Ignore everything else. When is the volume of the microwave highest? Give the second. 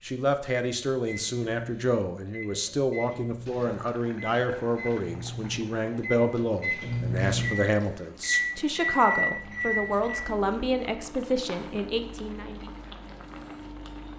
9 s.